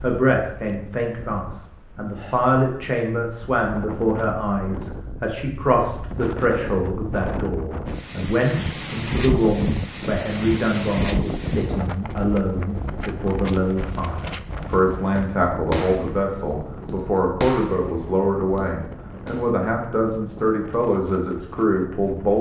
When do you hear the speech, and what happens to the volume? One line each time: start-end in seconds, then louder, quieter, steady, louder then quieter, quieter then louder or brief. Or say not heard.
0.0-22.3 steady.